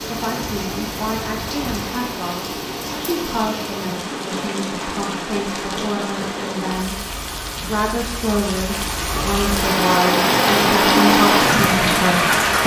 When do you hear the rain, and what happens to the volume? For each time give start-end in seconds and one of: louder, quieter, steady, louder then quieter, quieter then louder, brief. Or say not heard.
0.0-12.6 louder.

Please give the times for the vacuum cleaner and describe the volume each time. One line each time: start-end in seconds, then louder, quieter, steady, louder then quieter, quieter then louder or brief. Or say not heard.
not heard.